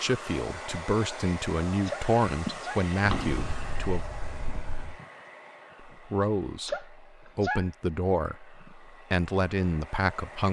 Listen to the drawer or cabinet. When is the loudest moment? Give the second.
3 s.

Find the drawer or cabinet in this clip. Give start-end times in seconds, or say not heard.
3.0-5.0.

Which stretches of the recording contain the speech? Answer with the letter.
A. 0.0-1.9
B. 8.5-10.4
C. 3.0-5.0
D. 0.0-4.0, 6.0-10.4
D.